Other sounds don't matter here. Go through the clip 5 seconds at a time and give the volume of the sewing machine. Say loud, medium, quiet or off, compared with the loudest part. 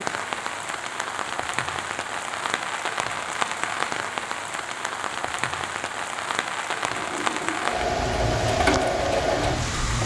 off, loud.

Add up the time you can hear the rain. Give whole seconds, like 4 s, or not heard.
10 s.